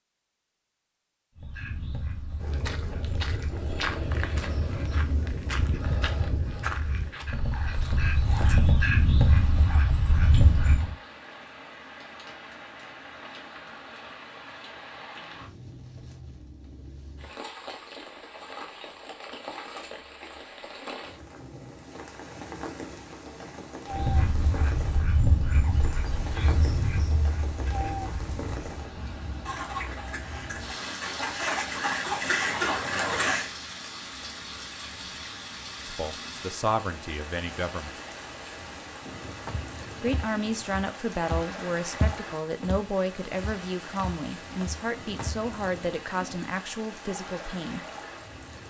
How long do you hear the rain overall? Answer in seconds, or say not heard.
39 s.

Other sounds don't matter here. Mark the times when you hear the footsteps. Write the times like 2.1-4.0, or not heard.
2.4-8.7, 39.5-45.5.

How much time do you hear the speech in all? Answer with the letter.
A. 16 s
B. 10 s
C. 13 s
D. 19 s
B.